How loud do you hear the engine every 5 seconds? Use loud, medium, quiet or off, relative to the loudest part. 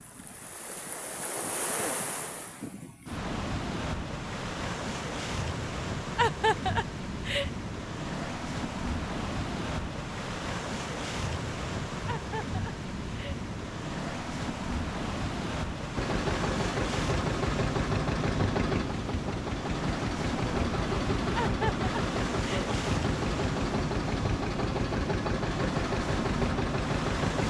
off, off, off, loud, loud, loud.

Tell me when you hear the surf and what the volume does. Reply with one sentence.
You can hear the surf from 0.0 to 27.4 s, at a steady volume.